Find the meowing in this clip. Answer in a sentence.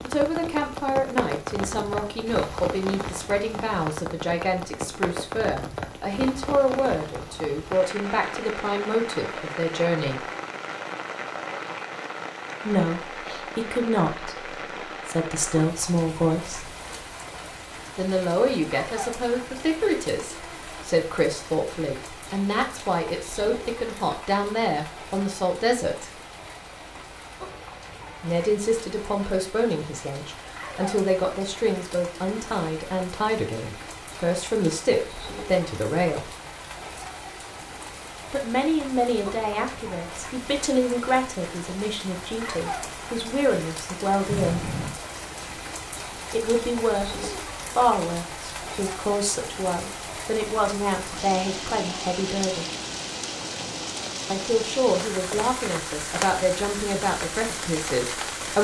You can hear the meowing from 44.2 to 45.0 s.